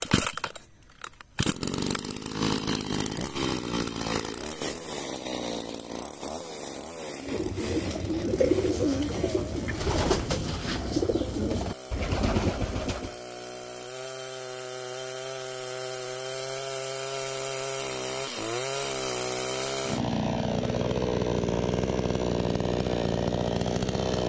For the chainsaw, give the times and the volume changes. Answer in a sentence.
The chainsaw can be heard from 0.0 to 24.2 s, getting quieter then louder.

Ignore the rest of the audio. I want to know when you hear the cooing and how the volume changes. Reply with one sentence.
You can hear the cooing from 7.2 to 13.2 s, at a steady volume.